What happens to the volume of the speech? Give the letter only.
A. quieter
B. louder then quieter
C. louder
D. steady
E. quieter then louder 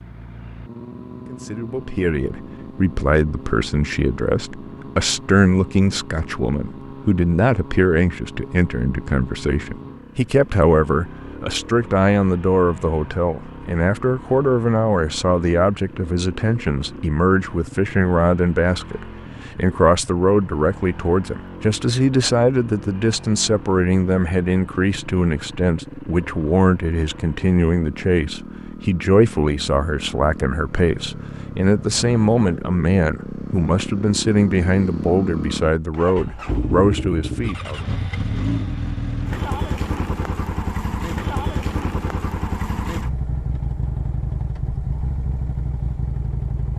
D.